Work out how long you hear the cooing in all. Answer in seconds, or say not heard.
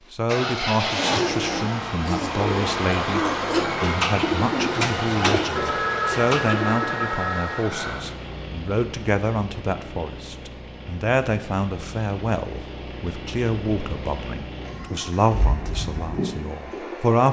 6 s.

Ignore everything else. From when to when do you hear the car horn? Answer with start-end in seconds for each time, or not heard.
not heard.